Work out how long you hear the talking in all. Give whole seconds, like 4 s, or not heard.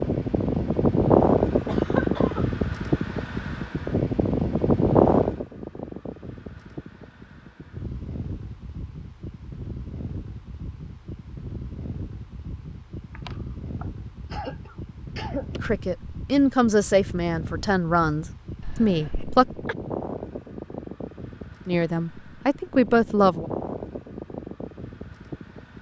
6 s.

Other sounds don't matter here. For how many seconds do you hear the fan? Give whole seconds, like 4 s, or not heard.
26 s.